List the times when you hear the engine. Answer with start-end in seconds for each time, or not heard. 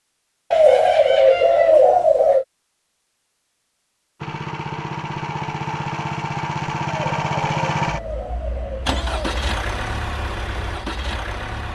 4.2-11.7.